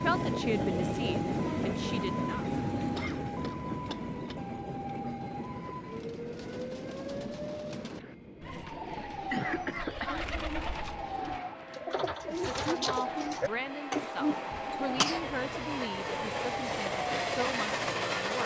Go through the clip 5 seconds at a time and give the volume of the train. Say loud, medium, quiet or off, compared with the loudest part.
loud, medium, medium, loud.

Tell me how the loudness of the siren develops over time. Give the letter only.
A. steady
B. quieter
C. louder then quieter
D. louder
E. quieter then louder
A.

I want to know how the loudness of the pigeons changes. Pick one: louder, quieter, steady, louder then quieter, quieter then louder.
louder.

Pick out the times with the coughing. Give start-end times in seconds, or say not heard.
3.0-4.3, 9.1-10.2, 14.5-15.3.